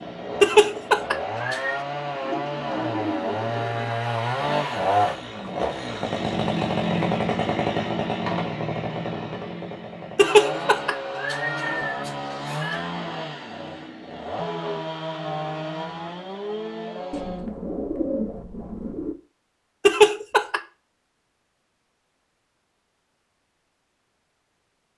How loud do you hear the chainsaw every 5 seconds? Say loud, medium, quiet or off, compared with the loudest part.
loud, loud, medium, medium, off.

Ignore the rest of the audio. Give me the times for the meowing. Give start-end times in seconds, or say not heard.
0.4-1.8, 10.2-12.8, 19.9-20.6.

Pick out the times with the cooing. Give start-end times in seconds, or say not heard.
2.2-4.0, 17.1-19.1.